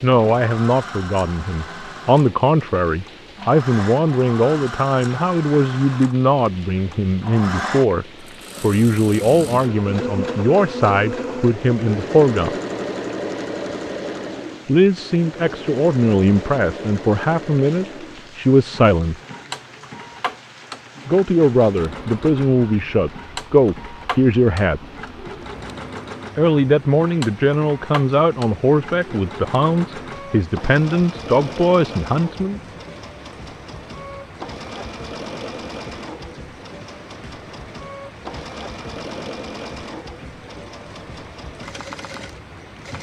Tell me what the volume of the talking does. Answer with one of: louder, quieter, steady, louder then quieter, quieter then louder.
steady.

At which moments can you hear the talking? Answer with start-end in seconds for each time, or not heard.
0.0-12.6, 14.7-19.1, 21.1-24.8, 26.4-32.6.